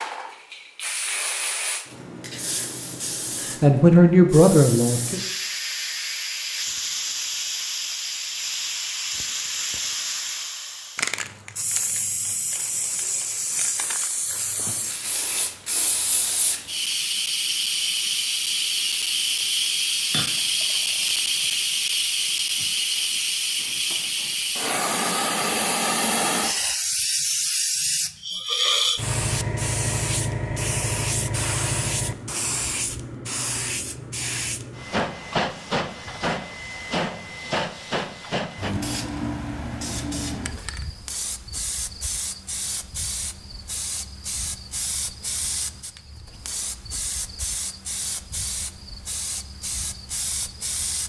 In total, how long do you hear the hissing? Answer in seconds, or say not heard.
51 s.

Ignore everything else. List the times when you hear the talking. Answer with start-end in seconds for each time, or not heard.
3.6-5.2.